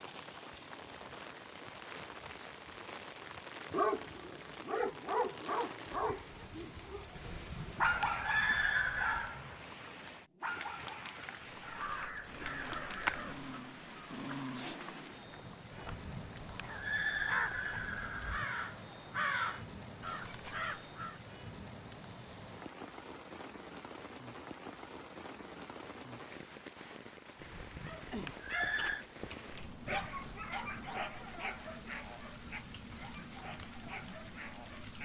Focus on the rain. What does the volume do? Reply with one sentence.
The volume of the rain stays about the same.